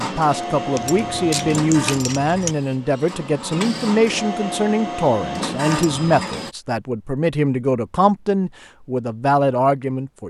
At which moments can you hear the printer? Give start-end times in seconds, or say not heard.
0.0-6.5.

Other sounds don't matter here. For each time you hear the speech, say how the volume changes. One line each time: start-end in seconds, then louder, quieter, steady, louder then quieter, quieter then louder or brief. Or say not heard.
0.0-10.2 steady.